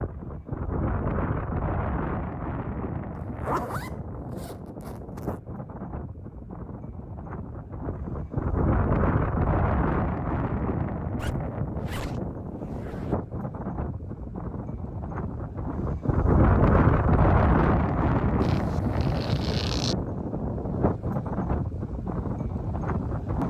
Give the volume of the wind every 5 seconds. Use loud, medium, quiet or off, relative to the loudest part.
medium, medium, medium, loud, medium.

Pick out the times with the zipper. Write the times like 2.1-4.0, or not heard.
3.1-5.3, 11.2-13.2, 18.4-19.9.